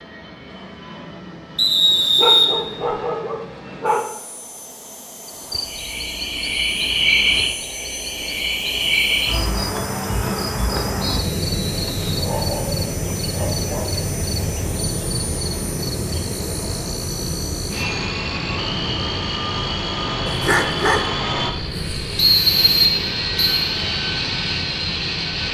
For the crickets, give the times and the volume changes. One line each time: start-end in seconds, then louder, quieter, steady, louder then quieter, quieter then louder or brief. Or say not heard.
5.2-25.4 quieter.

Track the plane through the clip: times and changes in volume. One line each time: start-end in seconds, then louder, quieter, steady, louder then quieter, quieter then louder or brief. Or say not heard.
0.0-25.4 louder.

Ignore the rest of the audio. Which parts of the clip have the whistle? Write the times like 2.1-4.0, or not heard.
1.6-2.5, 11.0-12.2, 22.1-23.6.